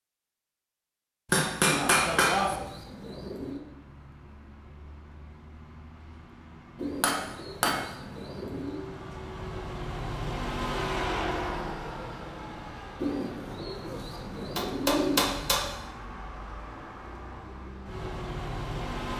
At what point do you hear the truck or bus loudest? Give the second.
11 s.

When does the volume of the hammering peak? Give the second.
2 s.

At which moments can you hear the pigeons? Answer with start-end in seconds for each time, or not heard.
1.6-3.6, 6.8-8.8, 12.9-15.7.